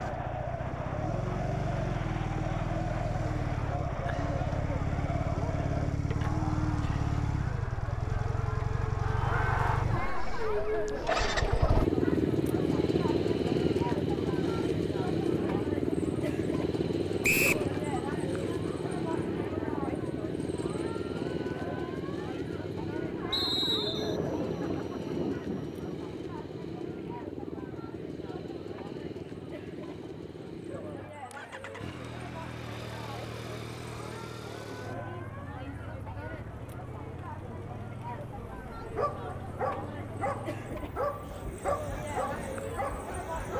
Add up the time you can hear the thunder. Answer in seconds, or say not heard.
2 s.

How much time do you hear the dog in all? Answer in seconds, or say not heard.
5 s.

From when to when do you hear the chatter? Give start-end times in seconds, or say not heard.
0.0-43.5.